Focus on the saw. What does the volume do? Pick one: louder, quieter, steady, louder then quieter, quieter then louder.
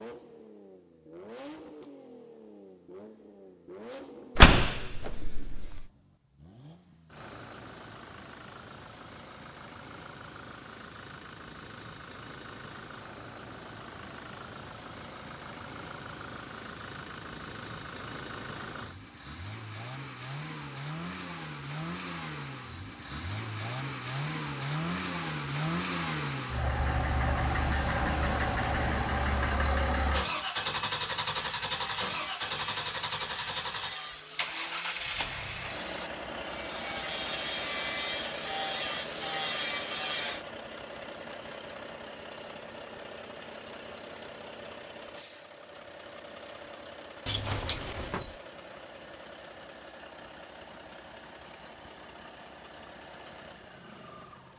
louder.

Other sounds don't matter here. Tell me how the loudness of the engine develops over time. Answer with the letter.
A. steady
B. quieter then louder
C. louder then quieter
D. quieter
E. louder
C.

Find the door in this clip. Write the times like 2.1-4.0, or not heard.
4.3-5.8, 47.2-48.4.